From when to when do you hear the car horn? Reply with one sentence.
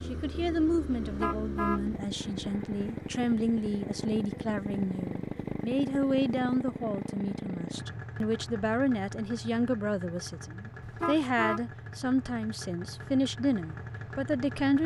The car horn can be heard from 1.0 to 1.9 s and from 10.8 to 11.7 s.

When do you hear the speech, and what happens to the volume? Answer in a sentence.
You can hear the speech from 0.1 to 14.8 s, at a steady volume.